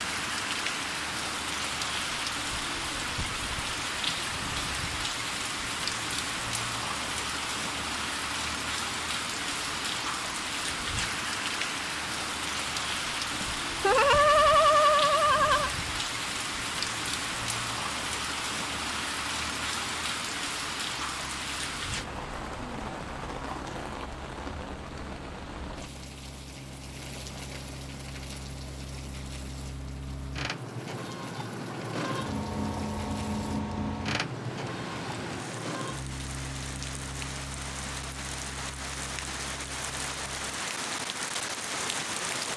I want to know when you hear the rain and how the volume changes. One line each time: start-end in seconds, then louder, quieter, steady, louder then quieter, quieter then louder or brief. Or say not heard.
0.0-42.5 quieter then louder.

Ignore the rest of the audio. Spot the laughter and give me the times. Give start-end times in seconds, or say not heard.
13.3-15.7.